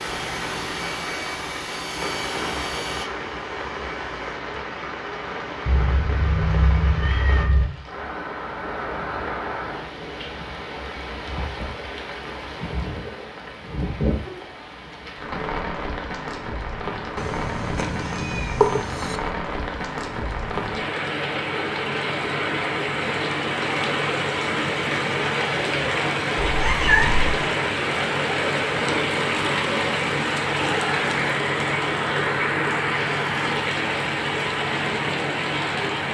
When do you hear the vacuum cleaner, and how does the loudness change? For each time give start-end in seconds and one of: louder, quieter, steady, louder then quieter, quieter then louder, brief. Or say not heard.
0.0-4.4 quieter.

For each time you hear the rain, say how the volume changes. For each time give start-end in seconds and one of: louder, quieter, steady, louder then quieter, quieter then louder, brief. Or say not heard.
0.0-36.0 louder.